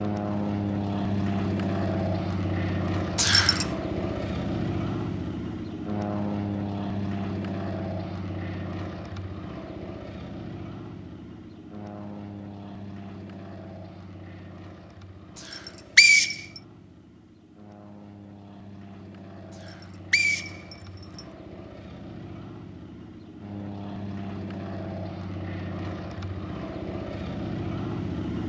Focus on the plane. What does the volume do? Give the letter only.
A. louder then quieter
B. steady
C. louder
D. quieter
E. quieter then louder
E.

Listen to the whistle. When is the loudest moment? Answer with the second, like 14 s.
16 s.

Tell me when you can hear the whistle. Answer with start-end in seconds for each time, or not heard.
3.1-3.6, 15.4-16.4, 19.6-21.2.